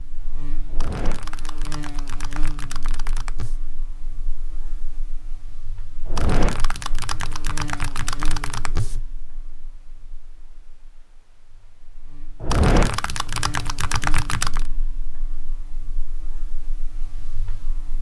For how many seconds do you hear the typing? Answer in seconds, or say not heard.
8 s.